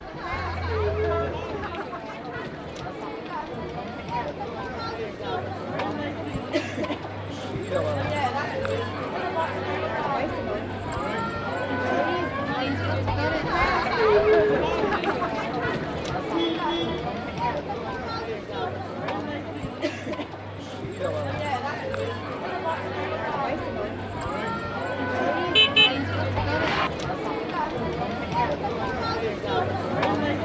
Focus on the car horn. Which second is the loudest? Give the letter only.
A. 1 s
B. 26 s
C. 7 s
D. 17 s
B.